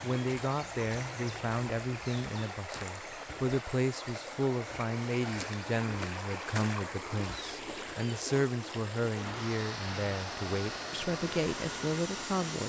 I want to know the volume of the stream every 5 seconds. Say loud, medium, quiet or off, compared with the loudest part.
loud, loud, medium.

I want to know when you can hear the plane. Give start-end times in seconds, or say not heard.
9.1-12.6.